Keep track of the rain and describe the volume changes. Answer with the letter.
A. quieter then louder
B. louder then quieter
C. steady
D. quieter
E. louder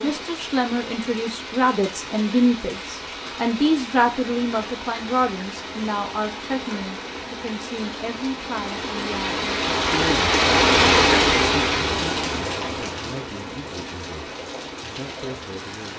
B.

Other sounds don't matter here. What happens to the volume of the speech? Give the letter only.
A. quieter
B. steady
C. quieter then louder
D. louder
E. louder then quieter
A.